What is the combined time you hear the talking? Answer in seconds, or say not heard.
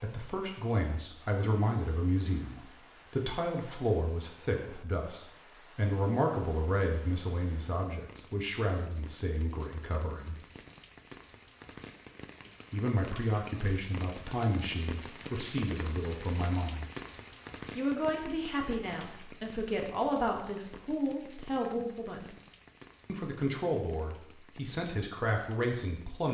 22 s.